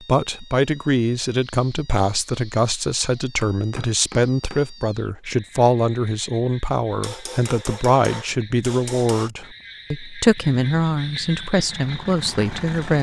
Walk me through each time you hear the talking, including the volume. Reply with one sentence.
The talking can be heard from 0.0 to 12.9 s, at a steady volume.